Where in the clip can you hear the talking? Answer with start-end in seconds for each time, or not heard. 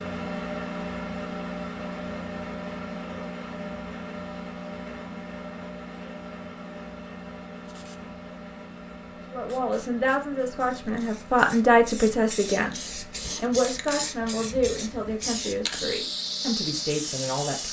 9.3-17.6.